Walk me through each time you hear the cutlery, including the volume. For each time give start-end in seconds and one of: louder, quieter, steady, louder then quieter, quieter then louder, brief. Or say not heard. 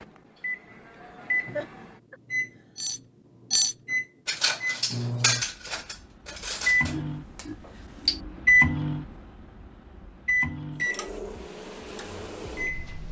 2.8-8.2 quieter.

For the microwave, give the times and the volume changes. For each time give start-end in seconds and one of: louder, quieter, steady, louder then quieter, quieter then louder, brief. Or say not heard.
0.0-13.0 louder then quieter.